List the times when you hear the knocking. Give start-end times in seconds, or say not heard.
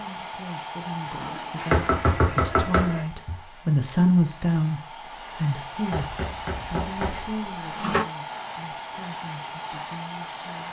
1.7-3.4, 5.9-7.3.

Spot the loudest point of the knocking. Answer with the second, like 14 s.
2 s.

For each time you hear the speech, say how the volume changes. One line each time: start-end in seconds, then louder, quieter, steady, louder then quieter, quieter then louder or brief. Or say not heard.
0.0-10.6 louder then quieter.